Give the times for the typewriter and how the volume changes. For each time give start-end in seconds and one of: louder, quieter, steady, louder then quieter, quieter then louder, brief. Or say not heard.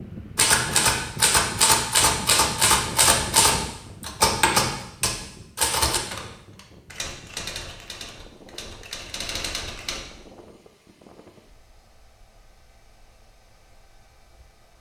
0.3-10.2 quieter.